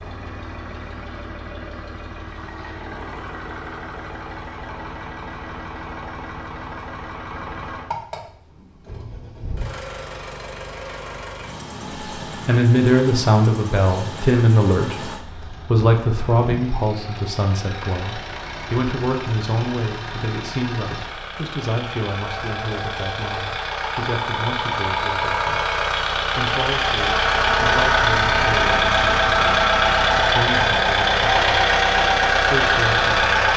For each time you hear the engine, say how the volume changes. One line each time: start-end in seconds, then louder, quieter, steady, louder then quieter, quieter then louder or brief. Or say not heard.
0.0-33.5 louder.